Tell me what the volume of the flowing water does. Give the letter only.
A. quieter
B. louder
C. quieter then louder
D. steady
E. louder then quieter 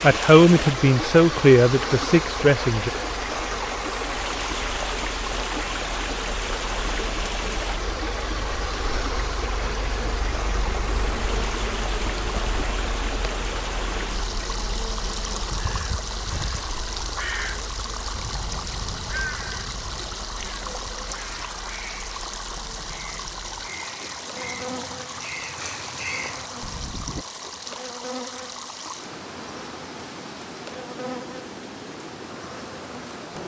A.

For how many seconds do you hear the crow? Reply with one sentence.
The crow can be heard for 12 seconds in total.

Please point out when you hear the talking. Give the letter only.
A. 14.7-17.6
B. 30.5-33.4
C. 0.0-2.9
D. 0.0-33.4
C.